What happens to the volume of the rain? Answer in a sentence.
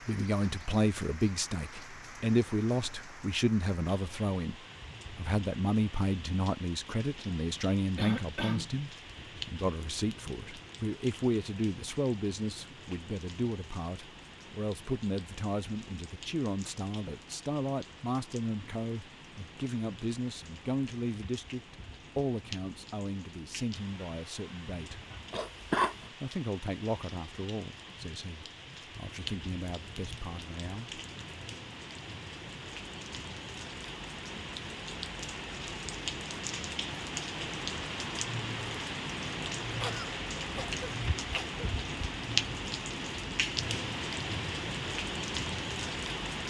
The volume of the rain goes up.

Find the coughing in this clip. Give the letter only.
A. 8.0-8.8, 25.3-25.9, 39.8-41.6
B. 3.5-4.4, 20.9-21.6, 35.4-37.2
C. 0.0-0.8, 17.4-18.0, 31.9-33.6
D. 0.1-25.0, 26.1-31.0
A.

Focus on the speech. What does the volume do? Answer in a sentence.
The volume of the speech goes down.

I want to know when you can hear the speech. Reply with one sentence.
You can hear the speech from 0.1 to 25.0 s and from 26.1 to 31.0 s.